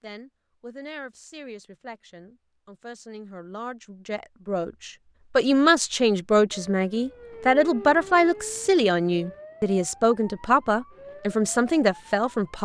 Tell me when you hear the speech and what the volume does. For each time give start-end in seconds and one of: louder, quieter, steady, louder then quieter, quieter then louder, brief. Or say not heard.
0.0-12.6 louder.